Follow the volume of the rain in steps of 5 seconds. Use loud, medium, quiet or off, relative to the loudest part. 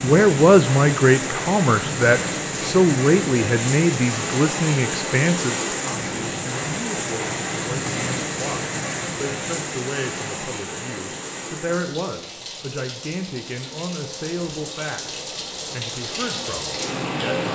loud, loud, medium, loud.